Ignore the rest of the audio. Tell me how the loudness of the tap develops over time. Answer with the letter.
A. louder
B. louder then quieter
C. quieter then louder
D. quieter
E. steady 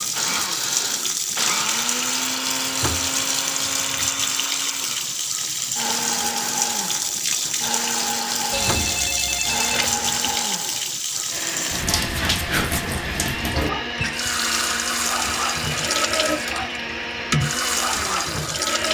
E.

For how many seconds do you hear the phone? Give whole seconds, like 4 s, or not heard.
2 s.